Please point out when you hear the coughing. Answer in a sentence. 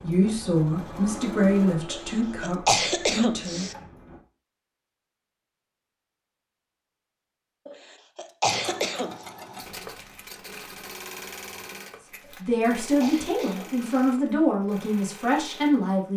You can hear the coughing from 1.9 to 3.8 s, from 7.7 to 9.2 s and from 12.2 to 13.8 s.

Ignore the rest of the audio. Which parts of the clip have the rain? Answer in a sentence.
The rain can't be heard in this clip.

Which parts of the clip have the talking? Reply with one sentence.
You can hear the talking from 0.0 to 3.6 s and from 12.4 to 16.1 s.